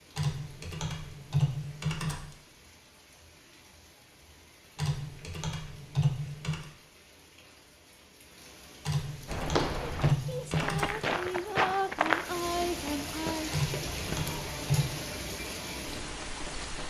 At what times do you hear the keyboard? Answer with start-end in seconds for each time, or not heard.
0.1-2.3, 4.8-6.7, 8.8-11.0, 13.5-14.9.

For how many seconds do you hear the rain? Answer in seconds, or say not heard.
17 s.